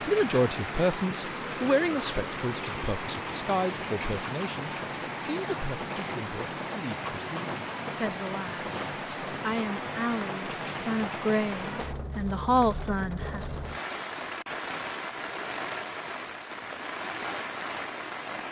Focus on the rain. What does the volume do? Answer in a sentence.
The loudness of the rain stays about the same.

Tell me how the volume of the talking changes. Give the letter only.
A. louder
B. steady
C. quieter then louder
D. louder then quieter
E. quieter
C.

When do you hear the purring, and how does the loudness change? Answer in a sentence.
You can't hear the purring here.